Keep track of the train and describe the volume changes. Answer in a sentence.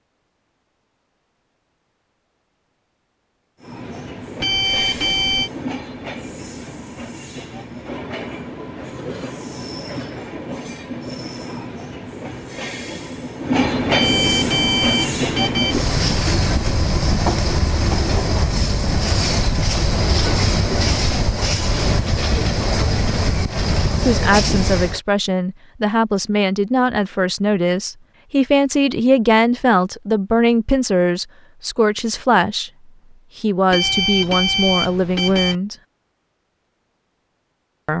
The loudness of the train goes up.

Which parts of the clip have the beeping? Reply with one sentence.
The beeping can be heard from 4.4 to 5.5 s, from 13.9 to 15.8 s and from 33.7 to 35.5 s.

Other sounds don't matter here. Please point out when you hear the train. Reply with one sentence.
You can hear the train from 3.6 to 25.0 s.